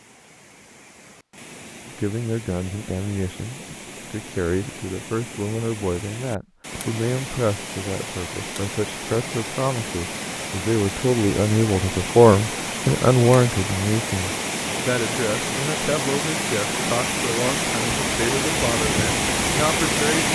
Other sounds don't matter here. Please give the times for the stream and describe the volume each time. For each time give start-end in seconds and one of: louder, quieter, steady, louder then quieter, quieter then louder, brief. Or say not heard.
0.0-20.2 louder.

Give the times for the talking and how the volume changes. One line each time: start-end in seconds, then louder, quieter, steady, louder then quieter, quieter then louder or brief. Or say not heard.
1.9-20.2 louder then quieter.